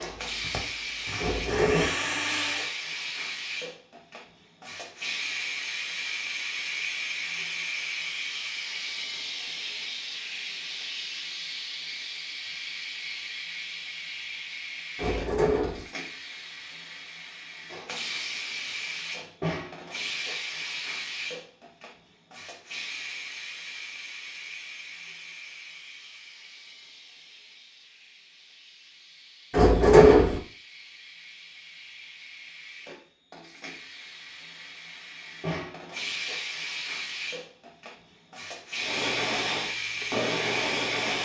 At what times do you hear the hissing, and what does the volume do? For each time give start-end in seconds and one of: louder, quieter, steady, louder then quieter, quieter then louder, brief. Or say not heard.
0.0-41.2 quieter then louder.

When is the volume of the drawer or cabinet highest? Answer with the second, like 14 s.
30 s.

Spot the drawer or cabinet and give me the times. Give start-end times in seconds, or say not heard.
1.1-1.9, 14.9-15.8, 29.5-30.4.